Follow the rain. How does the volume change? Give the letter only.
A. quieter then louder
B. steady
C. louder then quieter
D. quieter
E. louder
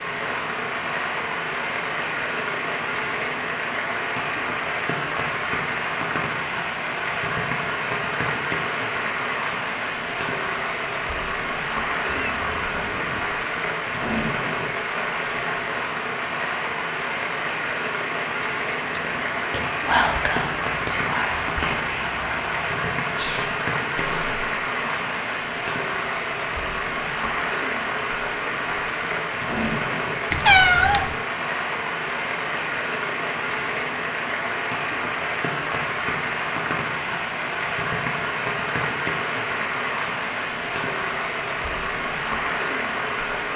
B.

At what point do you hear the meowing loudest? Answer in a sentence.
The volume of the meowing peaks at 31 seconds.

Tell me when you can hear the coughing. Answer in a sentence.
You can't hear the coughing here.